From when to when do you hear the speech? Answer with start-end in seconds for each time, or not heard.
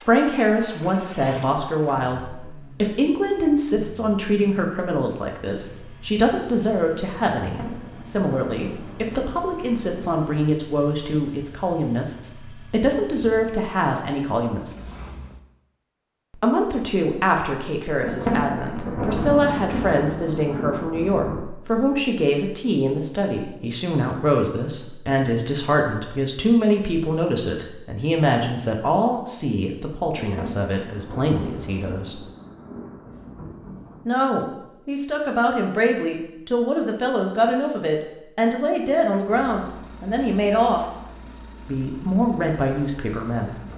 0.1-14.9, 16.4-32.2, 34.0-40.8, 41.6-43.7.